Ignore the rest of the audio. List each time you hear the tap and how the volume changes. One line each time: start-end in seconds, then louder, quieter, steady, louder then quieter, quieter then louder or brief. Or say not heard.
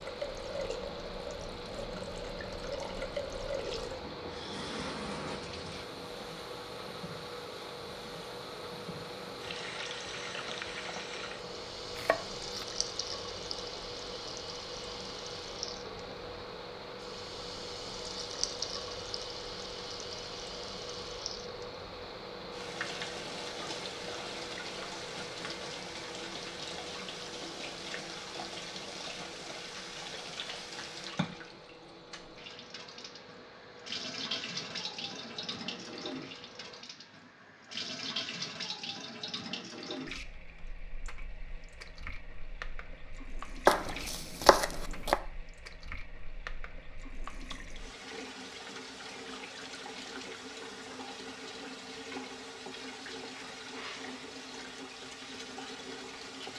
0.0-56.5 steady.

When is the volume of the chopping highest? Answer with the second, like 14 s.
44 s.